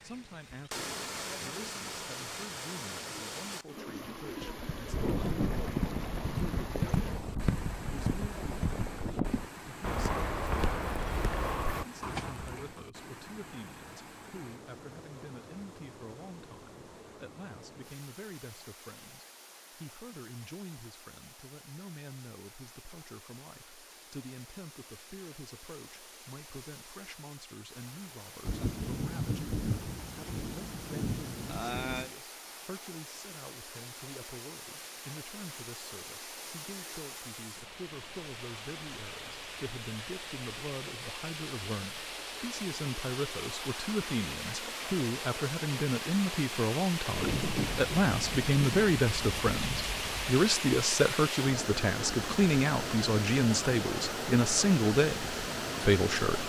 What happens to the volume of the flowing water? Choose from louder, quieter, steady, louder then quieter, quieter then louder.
quieter then louder.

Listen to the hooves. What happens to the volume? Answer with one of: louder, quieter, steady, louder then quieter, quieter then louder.
steady.